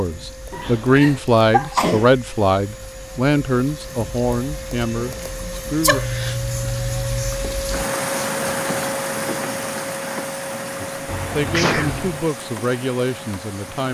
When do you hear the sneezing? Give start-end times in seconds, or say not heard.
0.5-2.0, 5.0-6.0, 11.5-11.9.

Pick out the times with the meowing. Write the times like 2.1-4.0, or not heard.
0.5-1.2, 5.9-7.5, 11.1-12.2.